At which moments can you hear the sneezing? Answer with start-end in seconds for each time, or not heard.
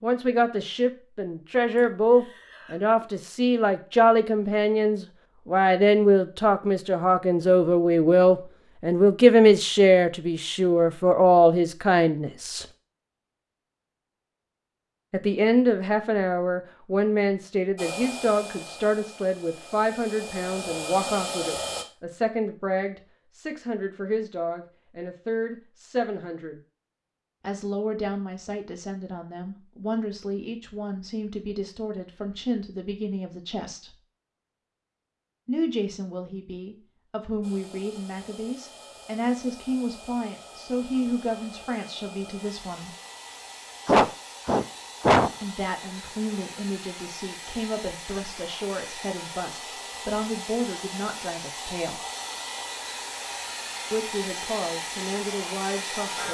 1.8-2.8, 43.9-45.3.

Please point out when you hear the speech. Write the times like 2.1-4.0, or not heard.
0.0-12.7, 15.1-26.6, 27.4-34.0, 35.5-43.0, 45.4-52.0, 53.9-56.2.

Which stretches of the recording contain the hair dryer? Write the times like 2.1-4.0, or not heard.
17.8-21.9, 37.4-56.2.